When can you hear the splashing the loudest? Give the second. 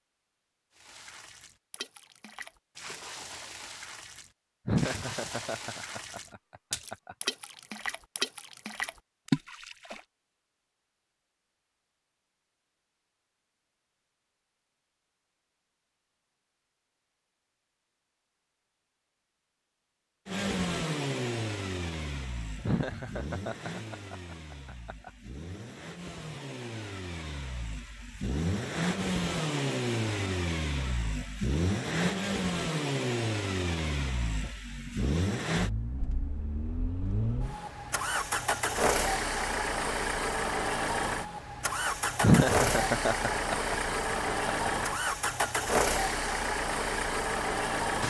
9 s.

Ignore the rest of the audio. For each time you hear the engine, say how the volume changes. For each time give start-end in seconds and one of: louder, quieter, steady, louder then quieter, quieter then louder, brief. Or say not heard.
20.2-48.0 louder.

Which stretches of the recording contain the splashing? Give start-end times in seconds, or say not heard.
0.8-10.0.